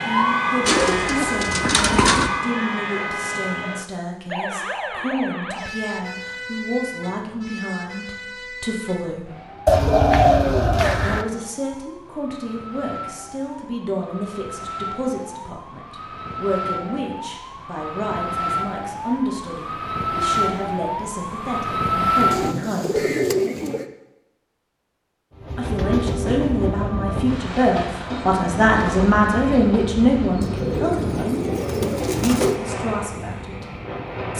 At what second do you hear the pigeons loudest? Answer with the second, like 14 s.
10 s.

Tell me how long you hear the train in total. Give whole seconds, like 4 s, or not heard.
9 s.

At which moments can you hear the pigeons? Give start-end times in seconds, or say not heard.
0.7-2.3, 9.7-11.2, 22.3-23.9, 30.4-32.5.